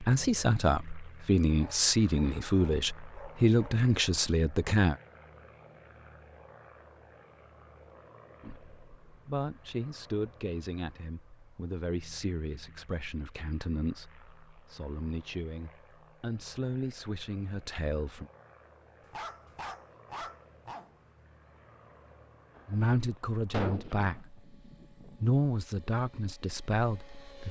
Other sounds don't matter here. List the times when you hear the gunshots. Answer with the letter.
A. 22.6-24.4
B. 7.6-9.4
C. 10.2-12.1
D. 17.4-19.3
A.